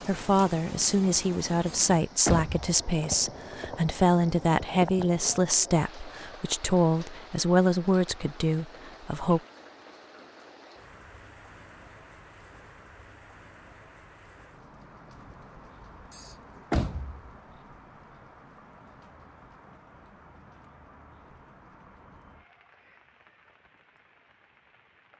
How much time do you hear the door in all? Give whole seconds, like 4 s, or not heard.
2 s.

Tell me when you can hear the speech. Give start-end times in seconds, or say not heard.
0.1-9.4.